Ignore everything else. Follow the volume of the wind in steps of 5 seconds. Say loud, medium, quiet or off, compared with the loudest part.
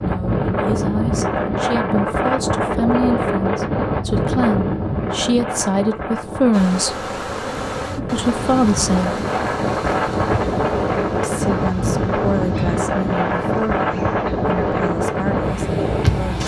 loud, medium, loud, loud.